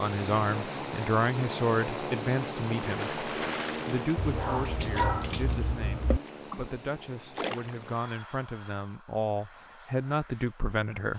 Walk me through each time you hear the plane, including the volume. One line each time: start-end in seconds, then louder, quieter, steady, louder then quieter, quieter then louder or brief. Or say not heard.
0.0-11.1 quieter.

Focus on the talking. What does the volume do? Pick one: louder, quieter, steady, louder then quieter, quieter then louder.
quieter then louder.